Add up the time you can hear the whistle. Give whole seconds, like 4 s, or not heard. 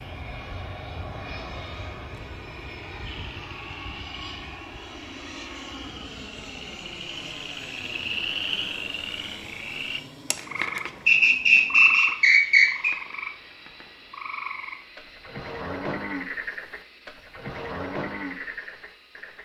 2 s.